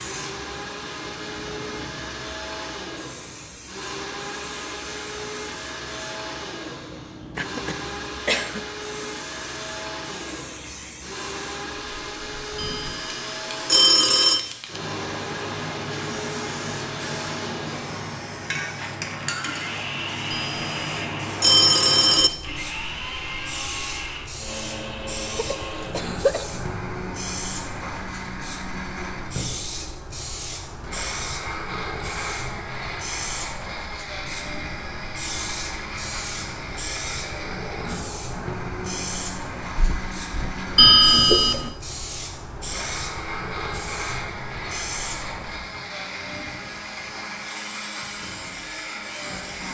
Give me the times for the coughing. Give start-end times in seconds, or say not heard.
7.3-8.7, 25.4-26.5, 39.8-41.6.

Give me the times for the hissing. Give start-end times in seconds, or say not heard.
0.0-49.6.